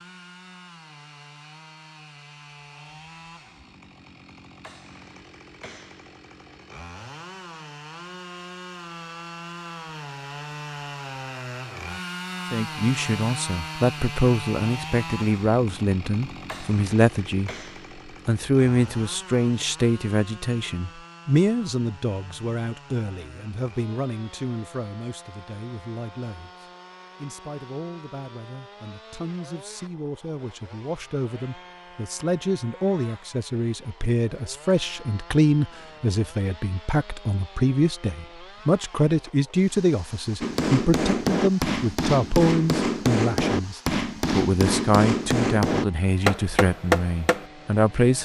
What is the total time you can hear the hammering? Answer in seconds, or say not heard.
7 s.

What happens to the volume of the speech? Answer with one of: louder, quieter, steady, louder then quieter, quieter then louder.
quieter then louder.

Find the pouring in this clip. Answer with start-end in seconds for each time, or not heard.
not heard.